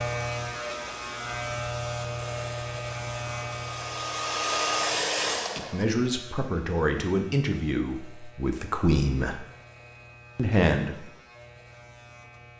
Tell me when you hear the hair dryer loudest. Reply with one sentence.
The loudest moment of the hair dryer is at 5 seconds.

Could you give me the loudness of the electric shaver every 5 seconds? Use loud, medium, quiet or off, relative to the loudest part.
loud, quiet, quiet.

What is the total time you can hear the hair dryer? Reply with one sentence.
The hair dryer can be heard for 6 seconds in total.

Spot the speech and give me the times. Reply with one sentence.
The speech can be heard from 5.7 to 9.4 s and from 10.3 to 11.1 s.